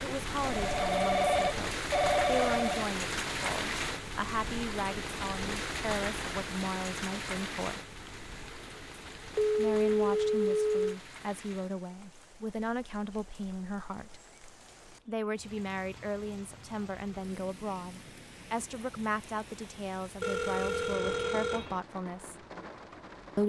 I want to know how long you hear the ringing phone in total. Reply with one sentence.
The ringing phone can be heard for 6 seconds in total.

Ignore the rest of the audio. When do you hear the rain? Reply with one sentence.
You can hear the rain from 0.0 to 23.4 s.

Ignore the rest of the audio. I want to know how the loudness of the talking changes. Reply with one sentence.
The volume of the talking stays about the same.